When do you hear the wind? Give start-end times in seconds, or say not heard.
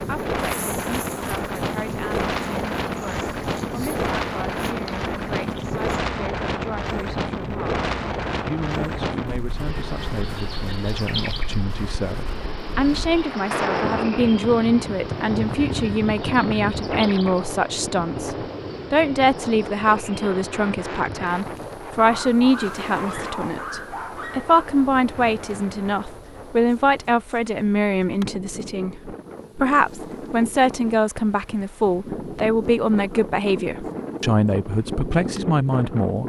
0.0-36.2.